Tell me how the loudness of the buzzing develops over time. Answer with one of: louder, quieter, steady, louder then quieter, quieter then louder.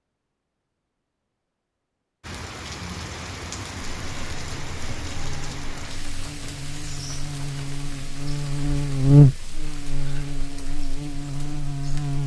louder then quieter.